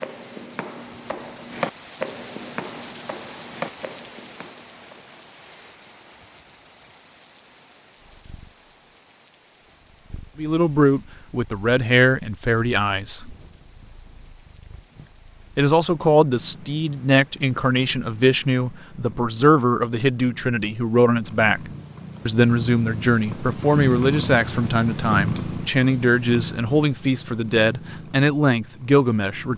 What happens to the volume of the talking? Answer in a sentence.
The loudness of the talking stays about the same.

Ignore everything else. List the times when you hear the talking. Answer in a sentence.
The talking can be heard from 10.3 to 13.3 s and from 15.6 to 29.5 s.